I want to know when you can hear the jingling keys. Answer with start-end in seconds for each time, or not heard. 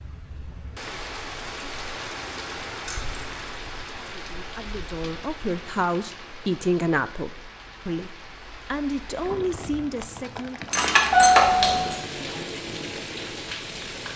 2.9-3.5, 10.7-11.9.